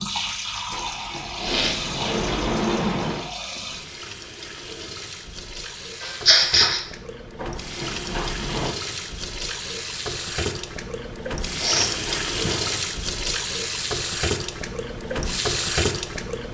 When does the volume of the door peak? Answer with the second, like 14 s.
3 s.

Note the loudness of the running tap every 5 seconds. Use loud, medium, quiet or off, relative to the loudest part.
medium, medium, loud, loud.